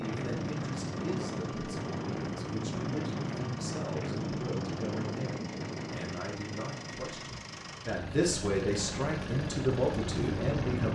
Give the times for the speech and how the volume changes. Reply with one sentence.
You can hear the speech from 0.0 to 10.9 s, getting louder.